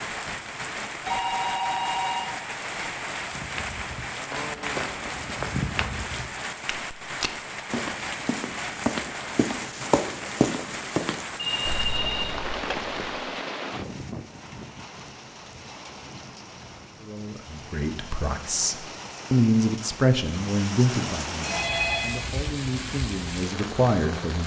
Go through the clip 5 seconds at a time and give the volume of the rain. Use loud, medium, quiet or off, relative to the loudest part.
loud, loud, loud, medium, loud.